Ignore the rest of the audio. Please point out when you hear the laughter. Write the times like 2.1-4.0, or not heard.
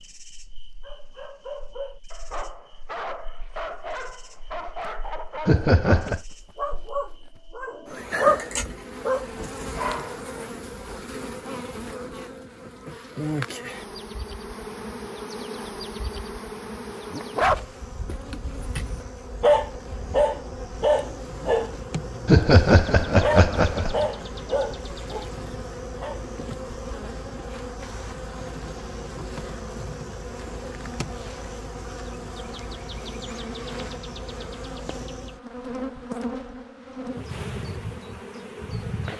5.5-6.2, 22.2-24.0.